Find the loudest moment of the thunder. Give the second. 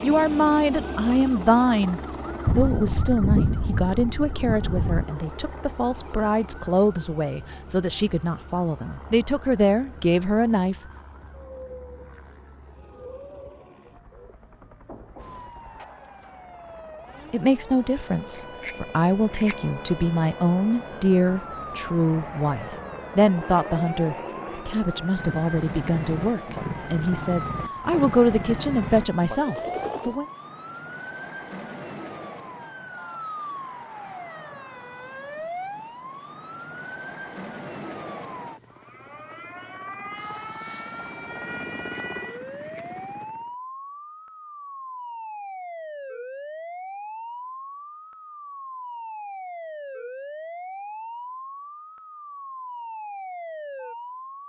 3 s.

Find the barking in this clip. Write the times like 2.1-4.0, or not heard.
not heard.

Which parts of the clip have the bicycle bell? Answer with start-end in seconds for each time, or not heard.
18.4-19.9, 41.9-43.1.